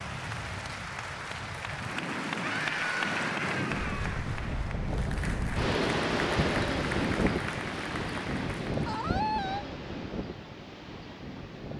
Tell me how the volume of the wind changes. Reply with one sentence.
The loudness of the wind goes up, then down.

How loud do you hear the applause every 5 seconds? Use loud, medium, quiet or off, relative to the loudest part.
loud, loud, off.